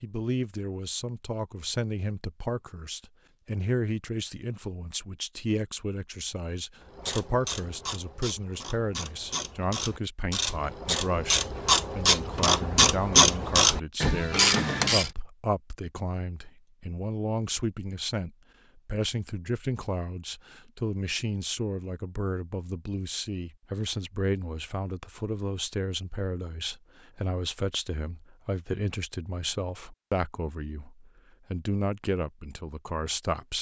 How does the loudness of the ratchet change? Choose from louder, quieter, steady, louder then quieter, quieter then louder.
louder.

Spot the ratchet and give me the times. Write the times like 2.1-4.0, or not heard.
6.8-15.1.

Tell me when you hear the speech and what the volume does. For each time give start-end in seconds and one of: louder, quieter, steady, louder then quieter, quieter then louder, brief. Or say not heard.
0.0-33.5 steady.